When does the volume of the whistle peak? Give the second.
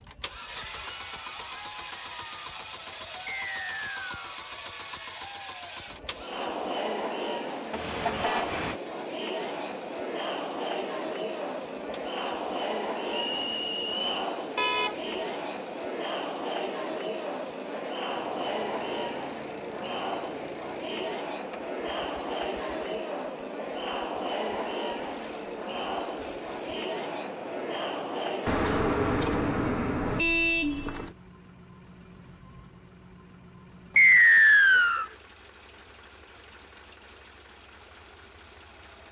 34 s.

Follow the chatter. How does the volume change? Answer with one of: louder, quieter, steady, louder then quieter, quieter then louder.
louder.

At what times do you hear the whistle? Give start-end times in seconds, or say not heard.
3.2-4.2, 13.1-14.2, 34.0-35.0.